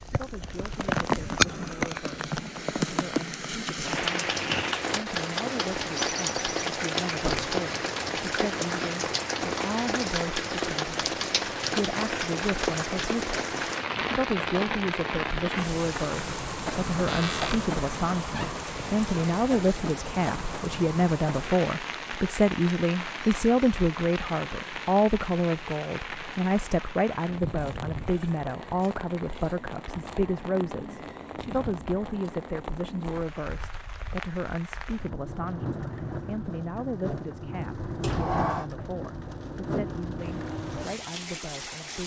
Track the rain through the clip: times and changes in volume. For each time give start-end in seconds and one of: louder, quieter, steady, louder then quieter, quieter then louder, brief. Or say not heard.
0.0-42.0 quieter.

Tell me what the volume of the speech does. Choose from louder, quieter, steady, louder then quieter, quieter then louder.
louder then quieter.